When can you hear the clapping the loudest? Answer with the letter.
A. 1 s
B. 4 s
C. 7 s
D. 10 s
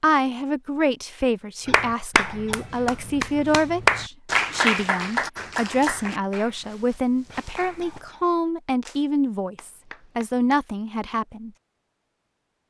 B.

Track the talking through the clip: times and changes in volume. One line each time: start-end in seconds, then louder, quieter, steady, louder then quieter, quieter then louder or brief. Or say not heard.
0.0-11.5 steady.